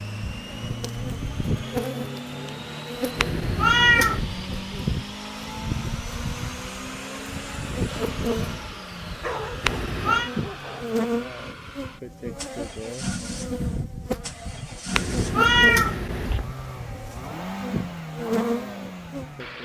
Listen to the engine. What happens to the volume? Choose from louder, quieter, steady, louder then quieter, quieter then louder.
steady.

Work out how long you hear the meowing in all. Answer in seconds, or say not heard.
3 s.